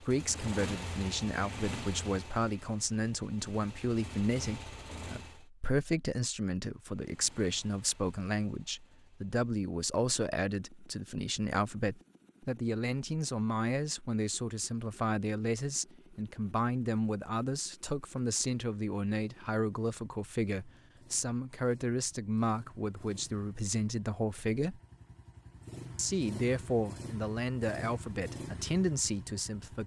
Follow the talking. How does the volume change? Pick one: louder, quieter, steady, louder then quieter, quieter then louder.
steady.